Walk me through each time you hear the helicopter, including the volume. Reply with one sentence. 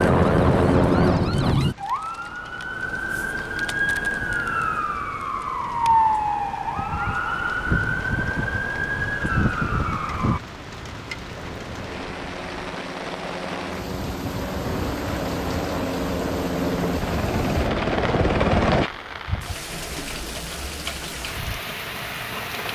The helicopter can be heard briefly from 0.0 to 1.6 s; and from 11.2 to 18.9 s, getting louder.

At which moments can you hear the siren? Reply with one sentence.
You can hear the siren from 0.0 to 10.4 s.